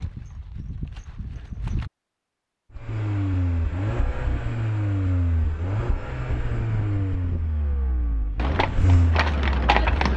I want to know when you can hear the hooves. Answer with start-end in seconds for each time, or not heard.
0.0-1.9, 8.3-10.1.